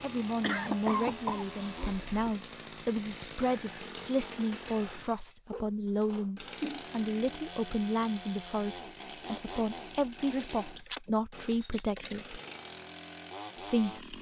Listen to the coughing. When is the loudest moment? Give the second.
1 s.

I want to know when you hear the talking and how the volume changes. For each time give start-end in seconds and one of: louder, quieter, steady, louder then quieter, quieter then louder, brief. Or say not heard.
0.0-12.4 steady
13.6-14.1 brief.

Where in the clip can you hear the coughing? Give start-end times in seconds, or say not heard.
0.4-2.4, 5.5-6.8, 10.3-12.3.